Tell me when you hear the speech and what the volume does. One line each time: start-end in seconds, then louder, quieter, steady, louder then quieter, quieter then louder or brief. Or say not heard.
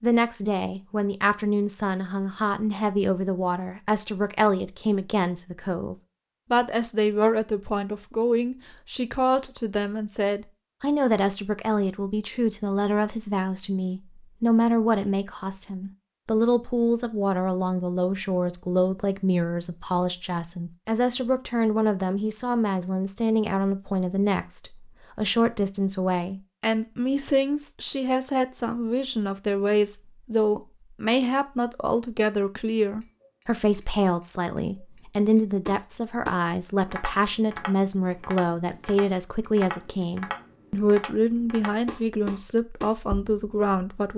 0.0-44.1 steady.